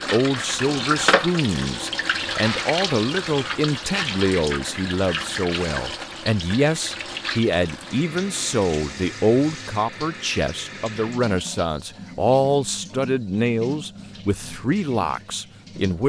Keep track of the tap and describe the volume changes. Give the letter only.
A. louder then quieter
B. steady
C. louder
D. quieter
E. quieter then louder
D.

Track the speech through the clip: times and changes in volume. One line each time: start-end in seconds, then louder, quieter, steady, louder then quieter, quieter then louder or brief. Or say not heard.
0.1-16.0 steady.